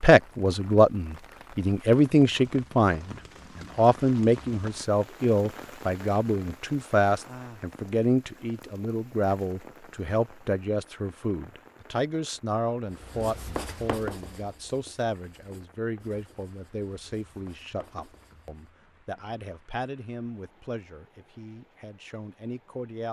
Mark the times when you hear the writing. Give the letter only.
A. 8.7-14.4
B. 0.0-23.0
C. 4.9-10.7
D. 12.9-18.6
D.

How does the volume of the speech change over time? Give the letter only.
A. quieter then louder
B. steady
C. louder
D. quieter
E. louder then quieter
D.